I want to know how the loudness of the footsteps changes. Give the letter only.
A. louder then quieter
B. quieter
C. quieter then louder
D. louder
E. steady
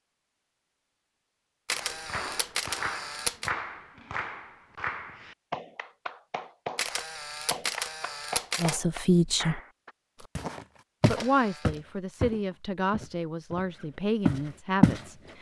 C.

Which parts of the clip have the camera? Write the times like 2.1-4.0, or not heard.
1.6-3.5, 6.8-8.8, 11.0-11.8.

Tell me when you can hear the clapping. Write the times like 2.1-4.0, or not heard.
1.7-9.9.